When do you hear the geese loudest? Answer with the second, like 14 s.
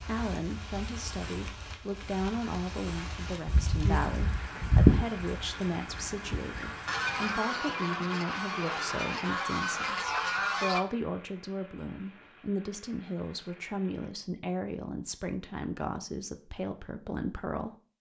5 s.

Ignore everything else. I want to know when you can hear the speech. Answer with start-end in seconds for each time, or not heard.
0.0-17.8.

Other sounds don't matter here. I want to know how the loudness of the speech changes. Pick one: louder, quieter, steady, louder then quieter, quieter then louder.
steady.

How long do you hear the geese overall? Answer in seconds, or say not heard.
7 s.